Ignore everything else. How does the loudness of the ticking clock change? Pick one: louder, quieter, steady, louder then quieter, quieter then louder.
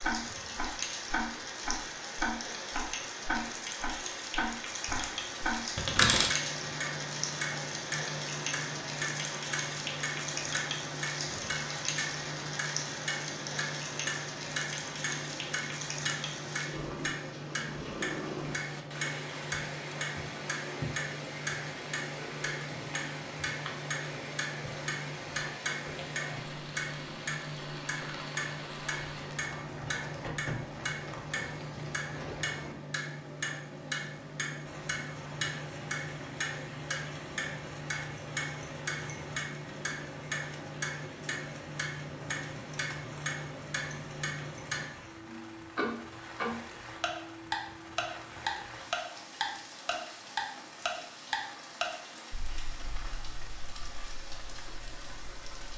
steady.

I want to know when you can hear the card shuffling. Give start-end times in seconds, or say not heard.
4.8-6.3.